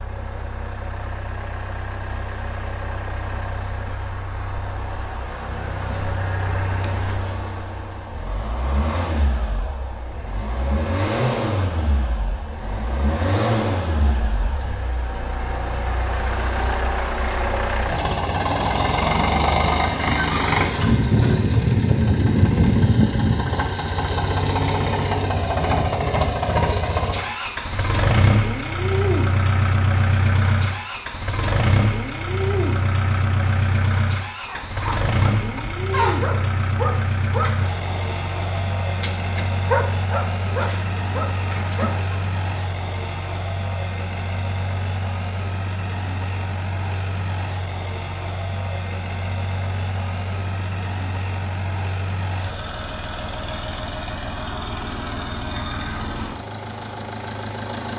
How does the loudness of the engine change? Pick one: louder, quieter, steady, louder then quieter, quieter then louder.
louder then quieter.